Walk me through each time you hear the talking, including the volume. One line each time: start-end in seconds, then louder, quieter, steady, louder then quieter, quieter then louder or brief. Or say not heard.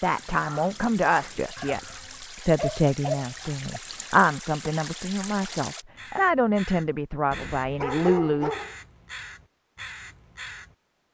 0.0-8.5 steady.